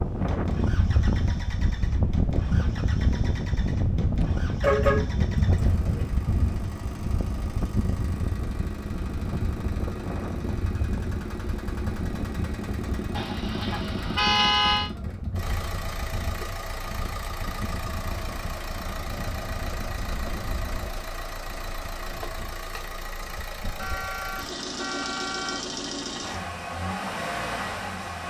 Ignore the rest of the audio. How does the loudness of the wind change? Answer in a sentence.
The volume of the wind goes down.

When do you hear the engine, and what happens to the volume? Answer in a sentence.
You can hear the engine from 0.1 to 28.2 s, getting louder.